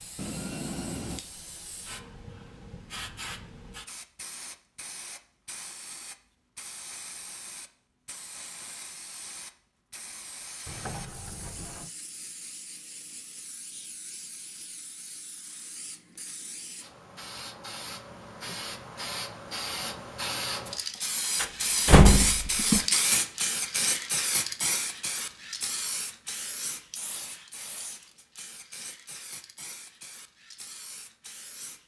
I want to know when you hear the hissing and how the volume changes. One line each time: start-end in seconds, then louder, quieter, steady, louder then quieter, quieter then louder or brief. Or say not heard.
0.0-31.8 louder then quieter.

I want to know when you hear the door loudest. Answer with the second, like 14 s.
22 s.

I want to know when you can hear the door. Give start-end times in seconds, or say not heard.
0.1-1.2, 10.7-11.9, 21.4-22.9.